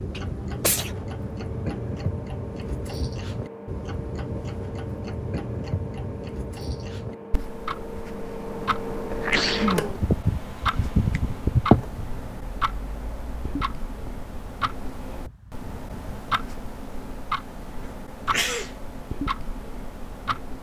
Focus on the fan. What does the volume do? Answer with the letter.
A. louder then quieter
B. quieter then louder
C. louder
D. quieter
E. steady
A.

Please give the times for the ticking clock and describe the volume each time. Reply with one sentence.
You can hear the ticking clock from 0.0 to 20.5 s, at a steady volume.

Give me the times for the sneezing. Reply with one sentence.
The sneezing can be heard from 0.1 to 0.9 s, from 9.1 to 9.8 s and from 18.2 to 18.7 s.